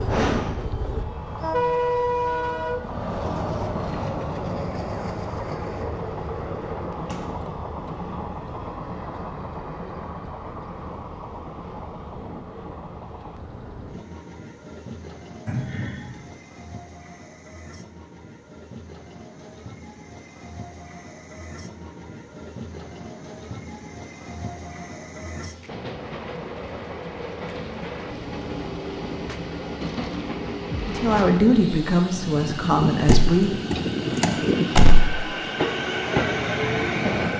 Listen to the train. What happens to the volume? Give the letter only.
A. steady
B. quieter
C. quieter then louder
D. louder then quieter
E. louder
C.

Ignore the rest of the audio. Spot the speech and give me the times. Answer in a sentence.
You can hear the speech from 30.9 to 33.6 s.